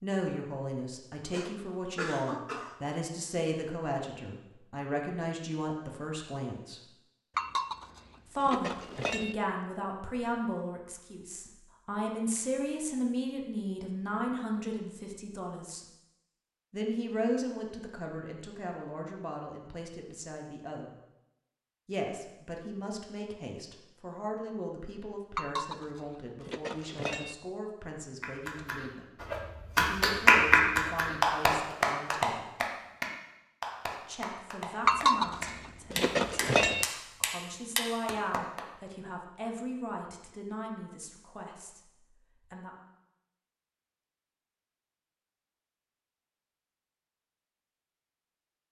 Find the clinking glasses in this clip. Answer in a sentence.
You can hear the clinking glasses from 7.3 to 9.3 s, from 25.4 to 27.4 s and from 34.9 to 36.9 s.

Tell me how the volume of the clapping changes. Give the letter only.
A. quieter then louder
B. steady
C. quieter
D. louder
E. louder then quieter
C.